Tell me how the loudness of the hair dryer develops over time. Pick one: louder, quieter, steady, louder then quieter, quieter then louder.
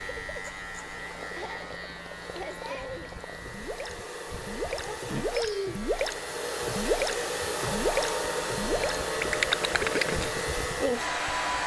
louder.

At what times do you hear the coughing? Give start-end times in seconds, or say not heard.
not heard.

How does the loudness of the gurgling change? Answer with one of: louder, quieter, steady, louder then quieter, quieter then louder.
louder.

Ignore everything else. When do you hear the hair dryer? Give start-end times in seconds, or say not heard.
0.0-11.6.